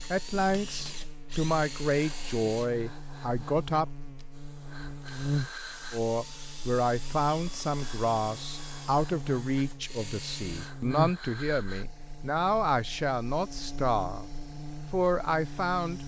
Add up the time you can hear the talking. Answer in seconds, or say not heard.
13 s.